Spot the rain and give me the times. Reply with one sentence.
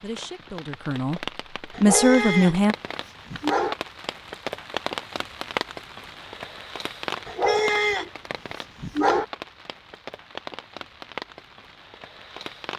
The rain can be heard from 0.0 to 12.7 s.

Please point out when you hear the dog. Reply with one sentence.
You can hear the dog from 1.7 to 3.8 s and from 7.2 to 9.2 s.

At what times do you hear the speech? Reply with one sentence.
The speech can be heard from 0.0 to 2.8 s.